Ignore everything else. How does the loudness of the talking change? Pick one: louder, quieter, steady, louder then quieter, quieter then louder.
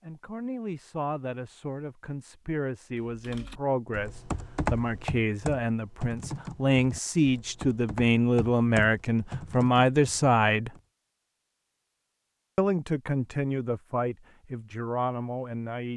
louder then quieter.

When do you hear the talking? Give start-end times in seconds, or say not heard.
0.0-10.7, 12.6-15.9.